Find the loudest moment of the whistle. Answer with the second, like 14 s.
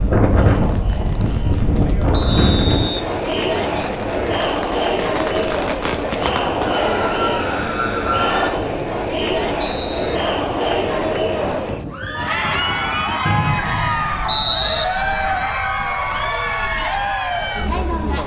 14 s.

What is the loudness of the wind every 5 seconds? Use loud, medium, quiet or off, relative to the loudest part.
loud, quiet, quiet, quiet.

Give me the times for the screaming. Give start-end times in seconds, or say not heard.
6.7-8.5.